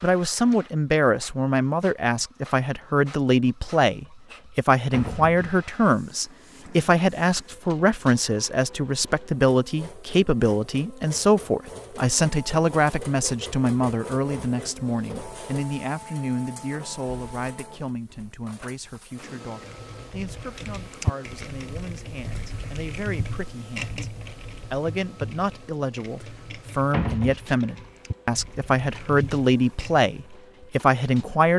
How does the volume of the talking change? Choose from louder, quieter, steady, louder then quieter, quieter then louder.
quieter then louder.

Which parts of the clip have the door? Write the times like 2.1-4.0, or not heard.
4.9-5.5, 26.9-27.4.